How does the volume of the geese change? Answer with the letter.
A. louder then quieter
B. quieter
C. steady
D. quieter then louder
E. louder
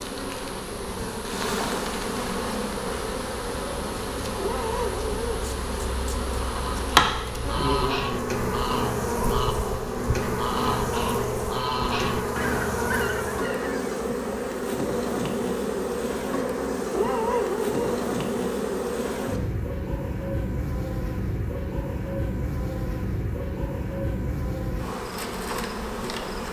C.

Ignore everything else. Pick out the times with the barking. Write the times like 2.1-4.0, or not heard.
4.3-5.2, 16.9-18.0.